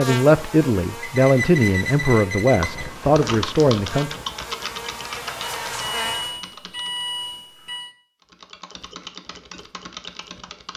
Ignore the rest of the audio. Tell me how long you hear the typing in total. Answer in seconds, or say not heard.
7 s.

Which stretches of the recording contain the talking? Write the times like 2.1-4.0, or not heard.
0.0-4.2.